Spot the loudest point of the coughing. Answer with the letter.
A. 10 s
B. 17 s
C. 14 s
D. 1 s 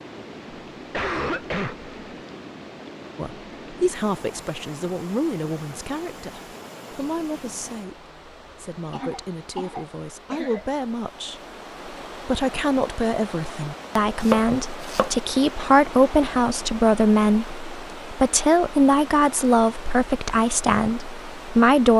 D.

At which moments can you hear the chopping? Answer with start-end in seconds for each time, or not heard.
14.2-15.2.